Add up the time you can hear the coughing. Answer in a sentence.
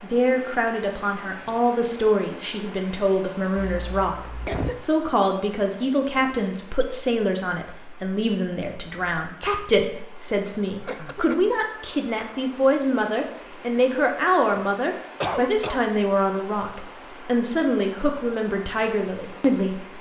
The coughing can be heard for 3 seconds in total.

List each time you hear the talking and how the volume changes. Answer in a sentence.
The talking can be heard from 0.0 to 19.9 s, at a steady volume.